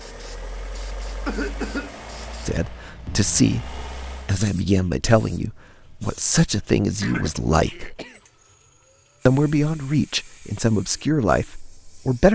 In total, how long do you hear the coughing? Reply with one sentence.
You can hear the coughing for 2 seconds altogether.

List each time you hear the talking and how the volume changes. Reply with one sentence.
The talking can be heard from 2.5 to 8.0 s, at a steady volume; and briefly from 9.2 to 12.2 s.